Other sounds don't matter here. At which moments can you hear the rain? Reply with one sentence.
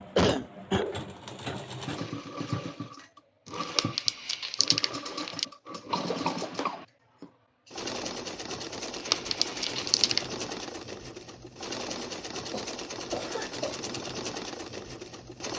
You can't hear the rain here.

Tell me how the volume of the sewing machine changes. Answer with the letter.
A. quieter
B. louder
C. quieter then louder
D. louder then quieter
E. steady
E.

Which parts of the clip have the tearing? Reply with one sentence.
You can hear the tearing from 3.5 to 5.5 s and from 8.8 to 10.2 s.